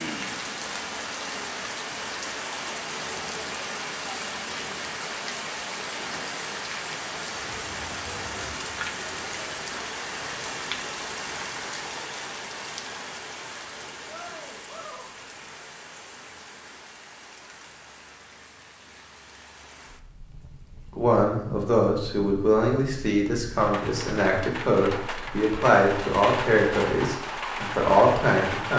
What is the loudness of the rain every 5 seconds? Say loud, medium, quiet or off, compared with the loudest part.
loud, loud, loud, quiet, medium, loud.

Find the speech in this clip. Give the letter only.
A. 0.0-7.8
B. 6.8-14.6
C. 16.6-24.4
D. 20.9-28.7
D.